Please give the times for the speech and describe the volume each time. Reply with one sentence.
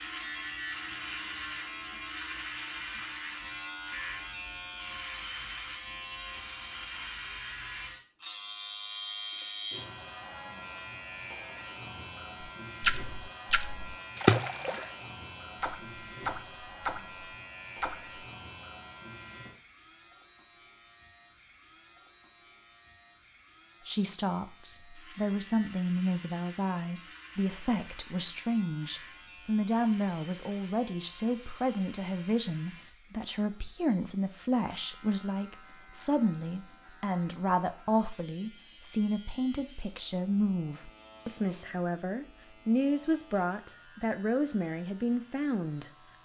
The speech can be heard from 23.9 to 45.9 s, at a steady volume.